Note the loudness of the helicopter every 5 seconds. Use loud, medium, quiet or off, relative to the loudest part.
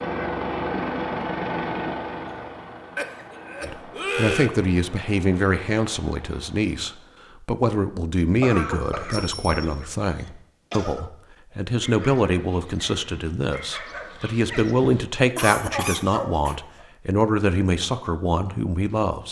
loud, quiet, off, off.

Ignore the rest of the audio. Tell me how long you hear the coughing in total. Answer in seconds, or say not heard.
5 s.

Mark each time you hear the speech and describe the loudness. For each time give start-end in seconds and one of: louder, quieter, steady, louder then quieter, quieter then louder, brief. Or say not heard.
3.6-19.2 steady.